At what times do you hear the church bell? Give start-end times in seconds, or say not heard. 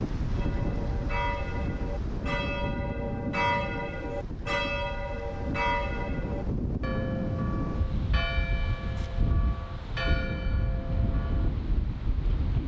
0.3-11.6.